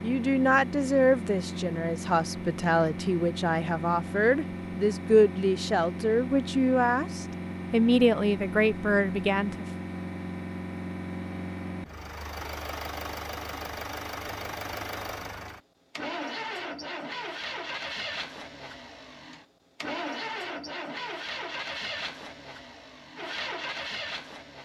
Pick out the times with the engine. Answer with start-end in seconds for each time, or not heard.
0.0-24.5.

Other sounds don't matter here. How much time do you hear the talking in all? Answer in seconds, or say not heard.
10 s.